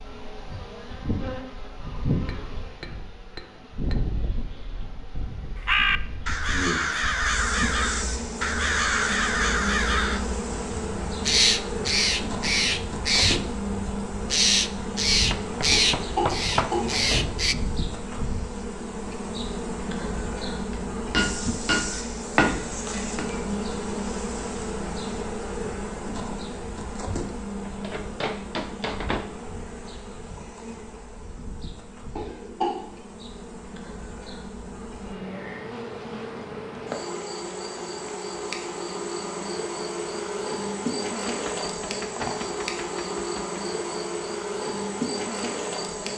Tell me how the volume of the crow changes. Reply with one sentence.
The loudness of the crow stays about the same.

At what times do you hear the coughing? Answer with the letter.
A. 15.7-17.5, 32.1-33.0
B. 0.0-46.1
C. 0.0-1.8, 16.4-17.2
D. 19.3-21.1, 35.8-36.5
A.